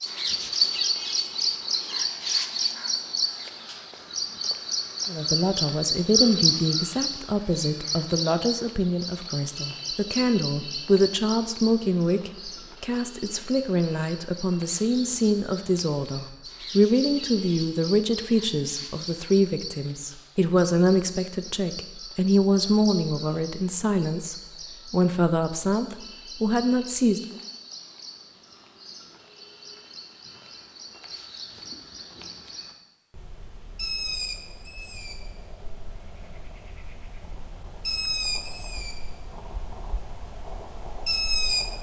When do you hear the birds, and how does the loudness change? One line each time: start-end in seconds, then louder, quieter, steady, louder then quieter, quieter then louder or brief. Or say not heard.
0.0-41.7 quieter then louder.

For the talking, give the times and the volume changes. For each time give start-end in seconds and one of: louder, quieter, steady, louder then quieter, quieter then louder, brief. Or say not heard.
5.0-27.2 steady.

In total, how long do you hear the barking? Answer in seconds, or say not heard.
not heard.